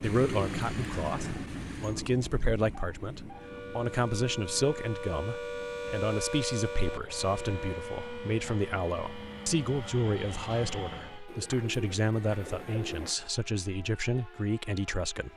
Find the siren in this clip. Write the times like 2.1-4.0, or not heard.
3.3-15.3.